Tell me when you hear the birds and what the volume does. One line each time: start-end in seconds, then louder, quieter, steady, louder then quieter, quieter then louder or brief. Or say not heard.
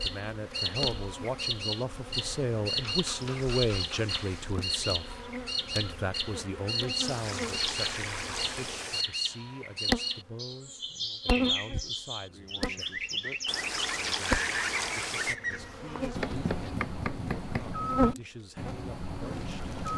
0.0-19.9 steady.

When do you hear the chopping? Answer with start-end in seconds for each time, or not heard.
2.9-4.3, 16.1-17.7.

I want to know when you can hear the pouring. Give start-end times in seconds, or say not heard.
3.1-4.5, 7.0-9.1, 13.4-15.3.